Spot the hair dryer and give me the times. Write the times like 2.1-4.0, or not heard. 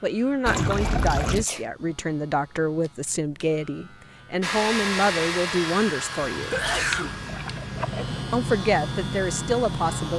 4.4-10.1.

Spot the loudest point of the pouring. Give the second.
1 s.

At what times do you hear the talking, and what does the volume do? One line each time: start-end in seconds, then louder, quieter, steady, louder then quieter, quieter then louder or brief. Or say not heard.
0.0-6.6 steady
8.3-10.1 brief.